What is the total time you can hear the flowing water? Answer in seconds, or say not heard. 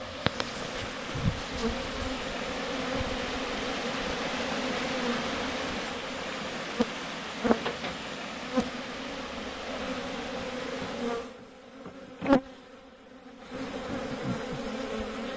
11 s.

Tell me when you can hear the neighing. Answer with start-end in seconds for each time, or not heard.
not heard.